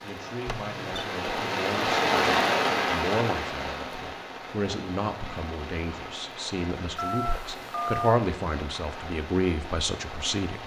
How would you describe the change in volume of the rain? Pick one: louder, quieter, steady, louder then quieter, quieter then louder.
quieter.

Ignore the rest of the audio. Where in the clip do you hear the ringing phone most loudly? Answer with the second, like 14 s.
8 s.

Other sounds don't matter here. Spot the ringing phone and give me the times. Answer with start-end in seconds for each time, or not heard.
0.5-1.1, 7.0-8.2.